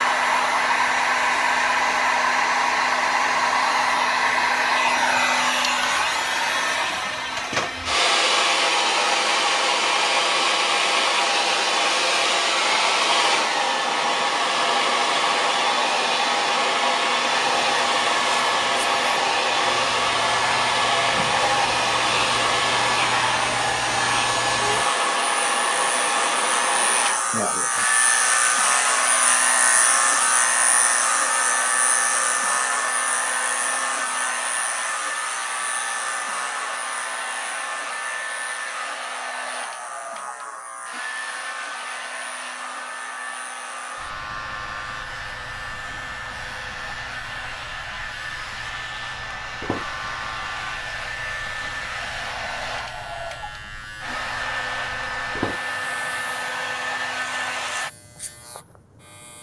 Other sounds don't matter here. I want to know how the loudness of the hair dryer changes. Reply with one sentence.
The loudness of the hair dryer goes down.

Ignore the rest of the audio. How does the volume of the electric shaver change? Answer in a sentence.
The volume of the electric shaver goes up, then down.